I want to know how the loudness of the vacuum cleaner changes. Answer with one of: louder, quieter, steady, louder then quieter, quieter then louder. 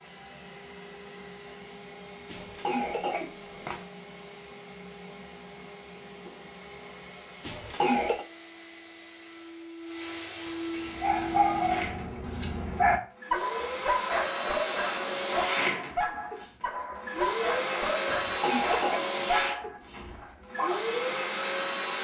louder.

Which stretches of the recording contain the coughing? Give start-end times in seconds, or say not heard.
2.2-3.9, 7.4-8.2, 18.1-19.1.